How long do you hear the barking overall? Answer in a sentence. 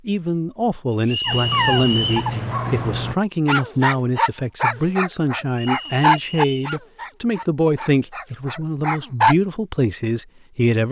The barking can be heard for 8 seconds in total.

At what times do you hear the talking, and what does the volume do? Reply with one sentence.
The talking can be heard from 0.1 to 10.8 s, at a steady volume.